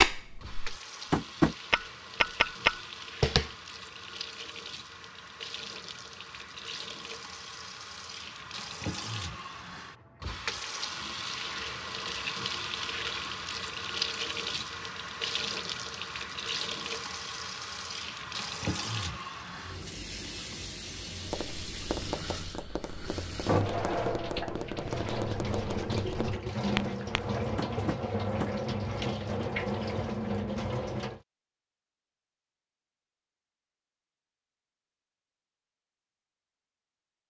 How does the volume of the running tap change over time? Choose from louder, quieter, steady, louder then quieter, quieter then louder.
louder.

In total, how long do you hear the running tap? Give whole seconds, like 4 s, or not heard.
31 s.